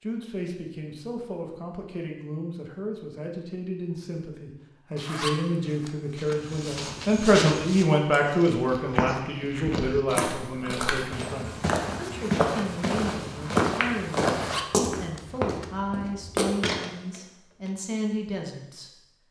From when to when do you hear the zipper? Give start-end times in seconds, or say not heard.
5.0-6.3, 14.3-15.7.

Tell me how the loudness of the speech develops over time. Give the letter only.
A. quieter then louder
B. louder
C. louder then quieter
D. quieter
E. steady
C.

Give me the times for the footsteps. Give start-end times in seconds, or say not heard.
6.2-17.7.